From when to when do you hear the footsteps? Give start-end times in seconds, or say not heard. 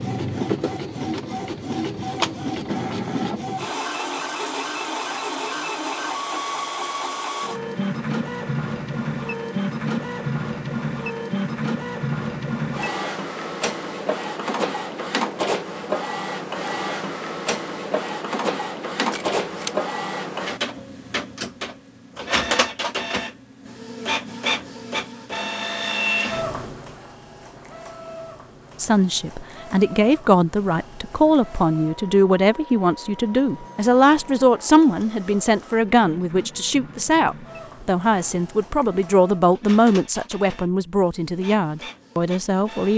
not heard.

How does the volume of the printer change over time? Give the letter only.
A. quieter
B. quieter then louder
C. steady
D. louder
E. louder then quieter
A.